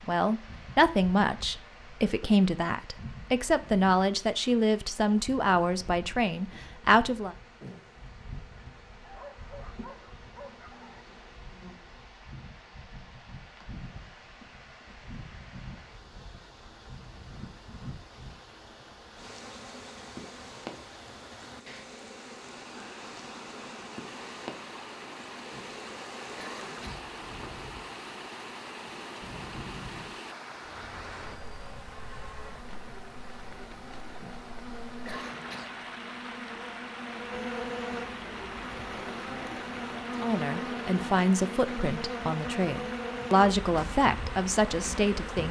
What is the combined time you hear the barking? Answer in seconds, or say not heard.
2 s.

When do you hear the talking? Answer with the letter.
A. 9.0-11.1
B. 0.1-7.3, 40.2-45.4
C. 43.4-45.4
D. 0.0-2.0
B.